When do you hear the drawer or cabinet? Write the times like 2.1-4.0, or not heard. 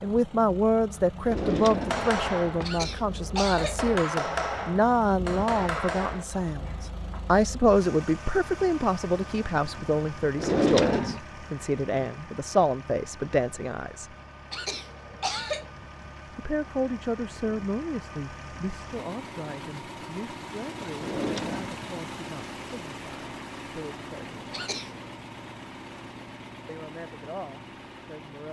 1.2-2.7, 10.3-11.2, 20.9-22.0.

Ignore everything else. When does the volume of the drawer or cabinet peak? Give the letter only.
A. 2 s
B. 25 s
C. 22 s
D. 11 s
D.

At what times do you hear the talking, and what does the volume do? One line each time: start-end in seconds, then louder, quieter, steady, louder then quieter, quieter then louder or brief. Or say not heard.
0.0-14.1 steady
16.4-24.6 quieter
26.6-28.4 brief.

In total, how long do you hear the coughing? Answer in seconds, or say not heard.
3 s.